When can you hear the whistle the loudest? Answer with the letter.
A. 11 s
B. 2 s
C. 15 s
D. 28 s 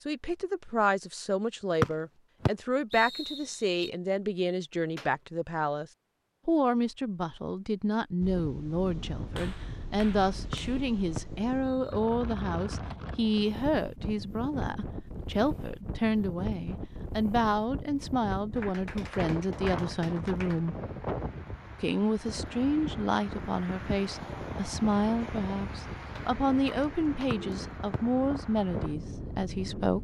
B.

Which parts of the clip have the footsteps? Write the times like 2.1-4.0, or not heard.
not heard.